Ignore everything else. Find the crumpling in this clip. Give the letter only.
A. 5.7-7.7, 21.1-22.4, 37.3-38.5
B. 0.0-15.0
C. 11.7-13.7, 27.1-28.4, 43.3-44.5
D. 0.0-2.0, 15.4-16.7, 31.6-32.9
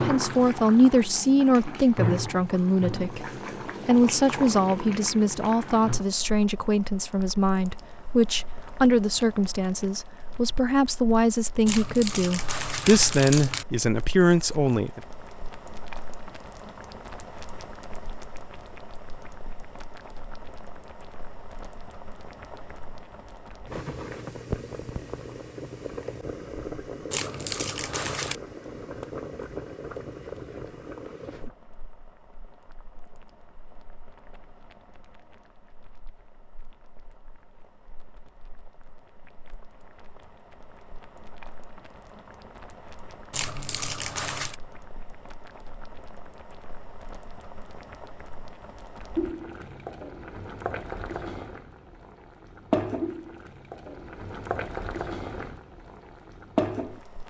C.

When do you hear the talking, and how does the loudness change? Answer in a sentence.
You can hear the talking from 0.0 to 15.0 s, at a steady volume.